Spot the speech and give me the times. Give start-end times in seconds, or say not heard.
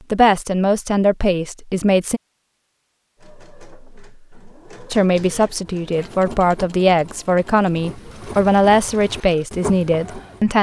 0.1-2.2, 4.9-10.5.